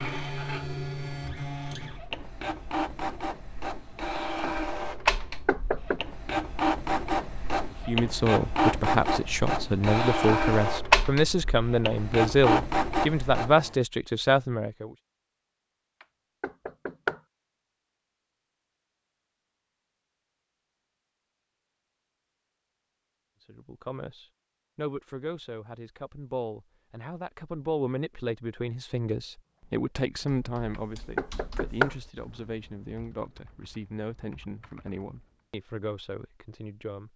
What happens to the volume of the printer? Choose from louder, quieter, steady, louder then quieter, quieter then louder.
louder.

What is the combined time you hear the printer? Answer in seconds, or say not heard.
14 s.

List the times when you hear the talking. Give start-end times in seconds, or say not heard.
7.8-14.9, 23.4-37.1.